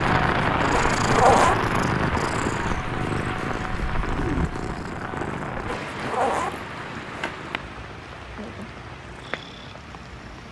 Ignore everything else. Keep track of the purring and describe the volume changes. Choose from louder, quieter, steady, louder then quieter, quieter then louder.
quieter.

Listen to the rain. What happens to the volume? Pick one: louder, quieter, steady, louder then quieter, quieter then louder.
quieter.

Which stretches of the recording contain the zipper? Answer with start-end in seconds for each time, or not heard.
0.7-1.6, 5.7-7.5.